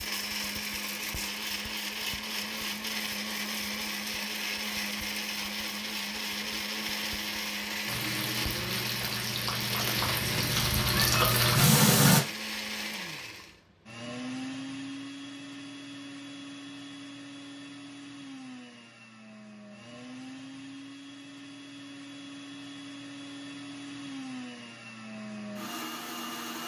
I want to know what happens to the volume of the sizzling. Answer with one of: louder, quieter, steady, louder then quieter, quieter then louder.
louder.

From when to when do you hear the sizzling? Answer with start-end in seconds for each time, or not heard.
7.8-12.2.